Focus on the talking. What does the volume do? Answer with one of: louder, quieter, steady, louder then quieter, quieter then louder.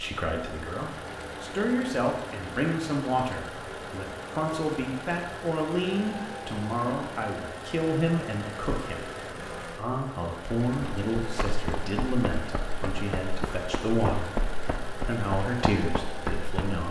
steady.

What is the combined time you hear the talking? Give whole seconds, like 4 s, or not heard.
17 s.